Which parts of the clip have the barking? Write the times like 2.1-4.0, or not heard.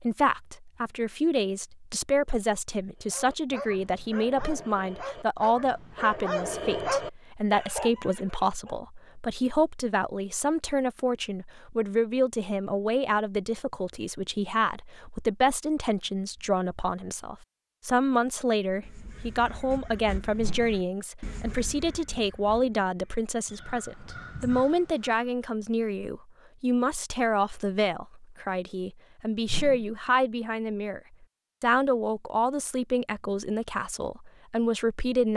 3.0-8.8.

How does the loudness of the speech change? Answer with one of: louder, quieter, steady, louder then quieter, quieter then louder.
steady.